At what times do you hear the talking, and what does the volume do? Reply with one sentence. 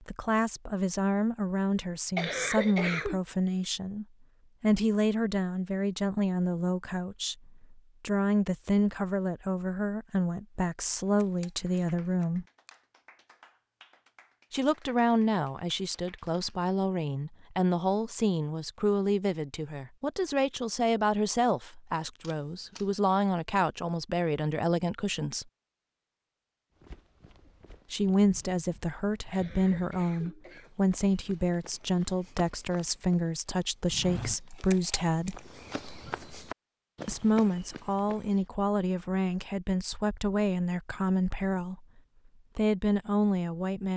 You can hear the talking from 0.1 to 12.4 s, at a steady volume; from 14.5 to 25.4 s, at a steady volume; from 27.9 to 35.4 s, at a steady volume; from 37.0 to 41.9 s, at a steady volume; and briefly from 42.5 to 43.9 s.